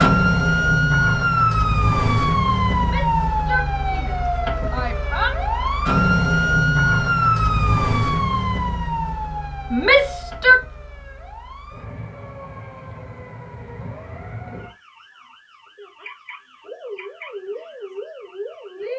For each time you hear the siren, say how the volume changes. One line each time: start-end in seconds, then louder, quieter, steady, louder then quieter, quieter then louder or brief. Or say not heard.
0.0-18.9 quieter.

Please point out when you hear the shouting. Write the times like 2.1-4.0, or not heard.
2.8-5.3, 9.7-10.6.